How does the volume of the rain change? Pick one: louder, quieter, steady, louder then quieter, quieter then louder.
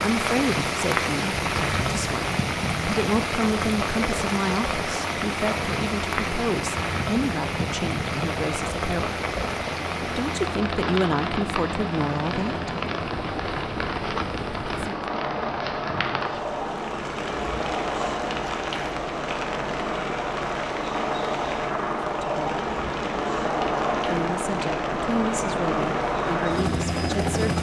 quieter.